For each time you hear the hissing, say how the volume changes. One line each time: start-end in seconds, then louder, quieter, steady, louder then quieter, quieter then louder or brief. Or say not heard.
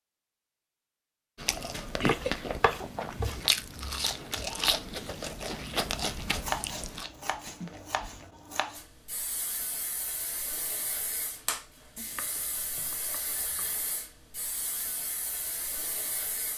8.8-16.5 steady.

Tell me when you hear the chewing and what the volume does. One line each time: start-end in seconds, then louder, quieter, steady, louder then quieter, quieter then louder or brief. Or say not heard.
1.4-8.3 quieter.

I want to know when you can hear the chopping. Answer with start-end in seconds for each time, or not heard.
1.6-3.5, 6.4-8.8, 11.9-13.8.